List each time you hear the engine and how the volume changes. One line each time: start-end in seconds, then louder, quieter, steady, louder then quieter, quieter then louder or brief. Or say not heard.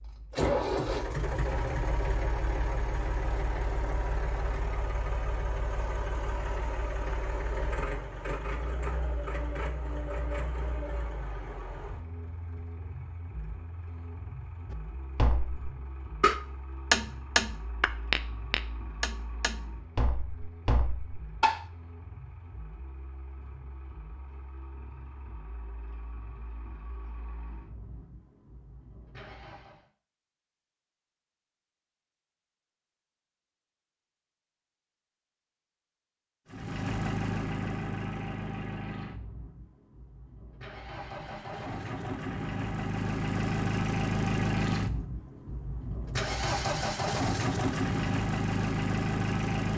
0.0-29.9 quieter
36.5-49.7 quieter then louder.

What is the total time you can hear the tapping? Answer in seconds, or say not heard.
7 s.